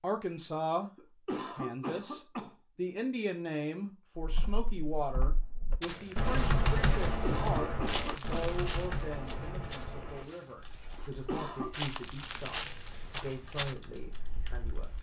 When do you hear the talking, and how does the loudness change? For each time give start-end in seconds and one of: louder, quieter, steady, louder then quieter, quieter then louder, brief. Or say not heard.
0.0-0.9 brief
1.5-14.9 quieter.